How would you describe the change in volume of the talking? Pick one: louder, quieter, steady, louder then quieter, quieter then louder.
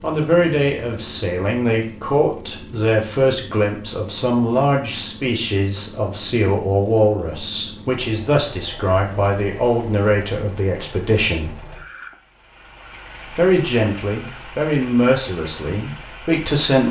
steady.